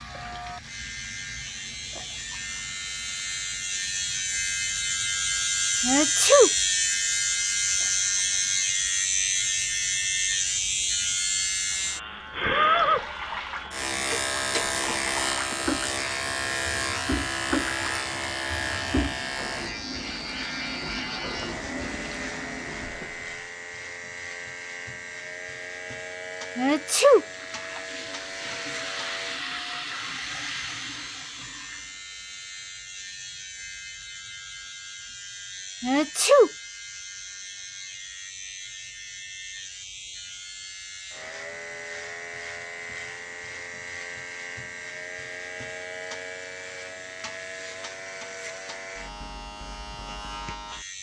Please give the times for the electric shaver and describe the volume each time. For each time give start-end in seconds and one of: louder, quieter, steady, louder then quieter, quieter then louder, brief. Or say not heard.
0.0-50.9 quieter.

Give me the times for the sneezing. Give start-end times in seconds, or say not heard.
5.8-6.5, 26.6-27.2, 35.8-36.5.